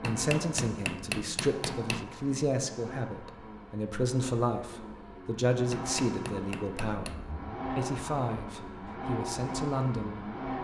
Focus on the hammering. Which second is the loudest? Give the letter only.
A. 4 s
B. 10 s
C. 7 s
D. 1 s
D.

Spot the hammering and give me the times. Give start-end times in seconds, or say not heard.
0.0-2.0, 5.7-7.2.